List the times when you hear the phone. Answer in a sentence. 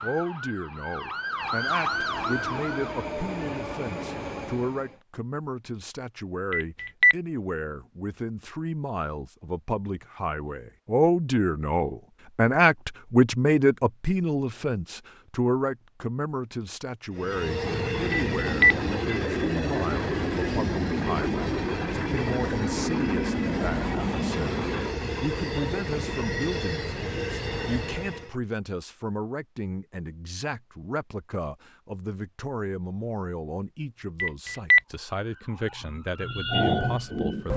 The phone can be heard from 6.5 to 7.2 s, from 18.1 to 18.8 s and from 34.2 to 34.8 s.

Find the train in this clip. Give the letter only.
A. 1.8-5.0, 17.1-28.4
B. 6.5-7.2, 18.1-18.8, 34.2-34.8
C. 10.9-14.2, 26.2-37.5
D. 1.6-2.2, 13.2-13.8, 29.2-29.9
A.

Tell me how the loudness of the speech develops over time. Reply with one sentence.
The volume of the speech goes up, then down.